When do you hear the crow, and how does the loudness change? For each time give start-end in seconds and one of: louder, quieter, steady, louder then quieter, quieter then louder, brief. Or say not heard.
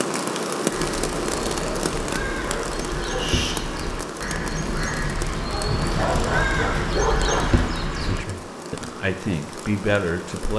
0.7-8.2 louder.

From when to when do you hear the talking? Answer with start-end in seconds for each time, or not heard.
8.0-10.5.